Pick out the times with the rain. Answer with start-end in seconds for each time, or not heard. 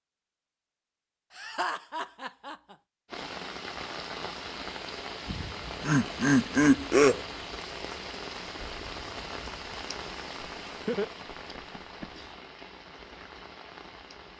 3.0-14.3.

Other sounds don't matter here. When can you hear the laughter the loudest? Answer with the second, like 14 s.
7 s.